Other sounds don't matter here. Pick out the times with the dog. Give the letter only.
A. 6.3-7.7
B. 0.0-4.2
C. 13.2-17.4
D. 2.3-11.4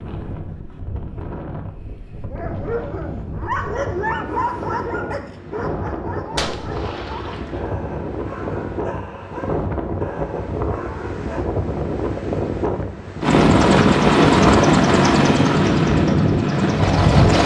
D.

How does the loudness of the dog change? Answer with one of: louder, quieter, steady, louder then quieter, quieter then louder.
quieter.